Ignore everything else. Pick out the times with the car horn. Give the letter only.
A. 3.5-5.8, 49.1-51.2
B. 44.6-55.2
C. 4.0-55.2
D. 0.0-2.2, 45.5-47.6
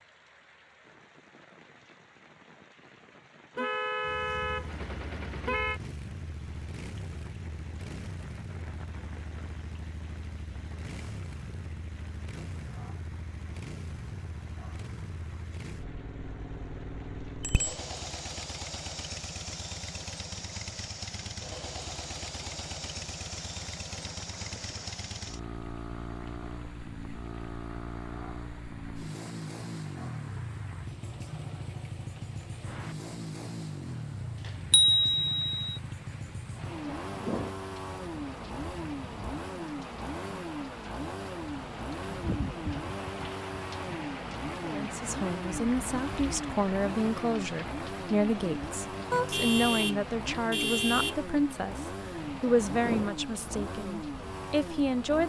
A.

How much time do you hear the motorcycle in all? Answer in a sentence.
You can hear the motorcycle for 51 seconds altogether.